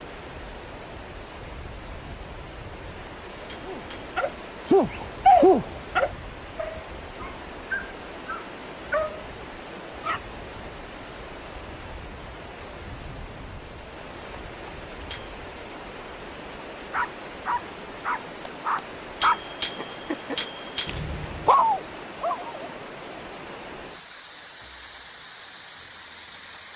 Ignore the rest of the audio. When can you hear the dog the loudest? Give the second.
5 s.